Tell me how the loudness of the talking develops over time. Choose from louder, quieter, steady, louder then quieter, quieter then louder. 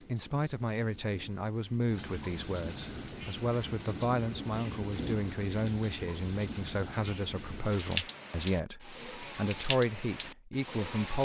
steady.